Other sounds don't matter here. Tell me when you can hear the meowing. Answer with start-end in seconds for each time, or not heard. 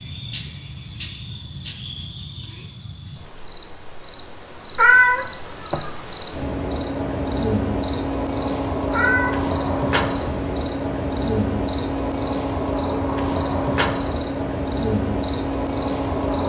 4.8-5.9, 8.9-9.4.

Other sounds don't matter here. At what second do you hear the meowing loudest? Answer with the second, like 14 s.
5 s.